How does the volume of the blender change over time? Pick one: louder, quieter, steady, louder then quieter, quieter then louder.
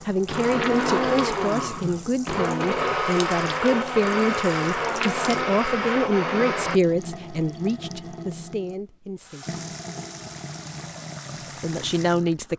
steady.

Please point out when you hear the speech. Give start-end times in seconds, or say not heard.
0.1-9.6, 11.6-12.5.